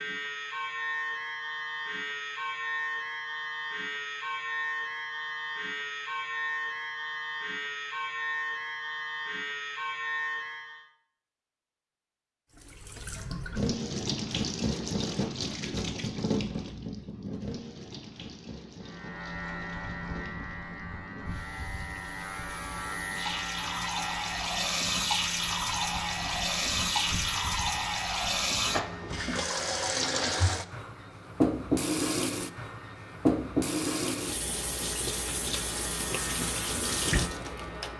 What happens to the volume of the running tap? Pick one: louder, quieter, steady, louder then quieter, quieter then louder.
quieter then louder.